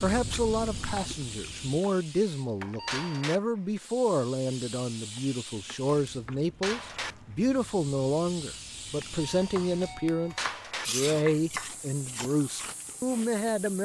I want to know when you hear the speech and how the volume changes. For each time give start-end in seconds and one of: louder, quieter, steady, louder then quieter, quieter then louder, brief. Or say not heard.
0.0-13.8 steady.